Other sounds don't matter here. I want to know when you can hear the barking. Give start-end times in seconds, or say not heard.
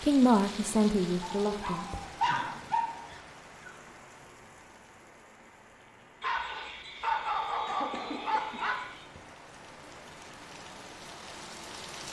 1.4-3.1, 6.2-9.1.